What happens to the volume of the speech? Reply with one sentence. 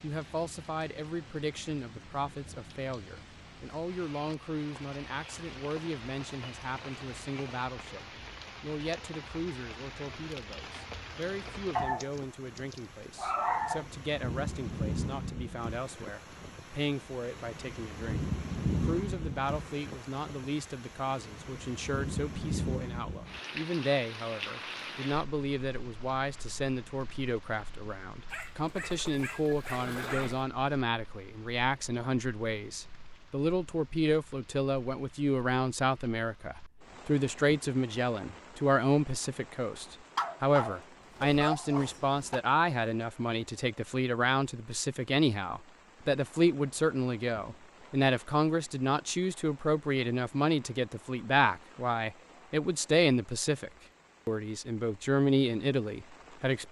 The volume of the speech goes up.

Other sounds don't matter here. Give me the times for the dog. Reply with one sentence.
The dog can be heard from 11.8 to 13.8 s, from 28.3 to 30.4 s and from 40.1 to 42.4 s.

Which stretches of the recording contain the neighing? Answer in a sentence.
You can hear the neighing from 29.9 to 30.4 s.